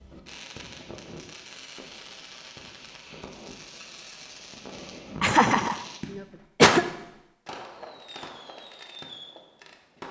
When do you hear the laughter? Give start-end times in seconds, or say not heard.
5.2-6.8.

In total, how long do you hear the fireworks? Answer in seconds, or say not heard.
10 s.